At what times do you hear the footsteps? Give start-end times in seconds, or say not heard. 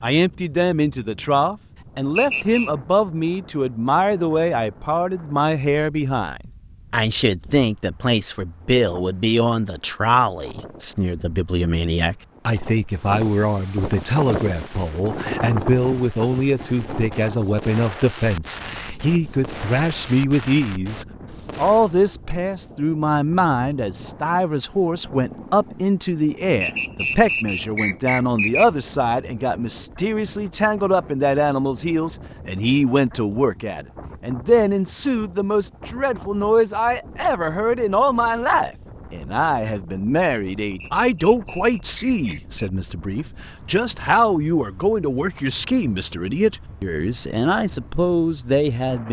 not heard.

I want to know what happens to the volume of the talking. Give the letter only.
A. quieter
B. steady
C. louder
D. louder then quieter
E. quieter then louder
B.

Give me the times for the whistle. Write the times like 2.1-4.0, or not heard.
2.1-2.7, 26.6-28.6, 40.8-42.7.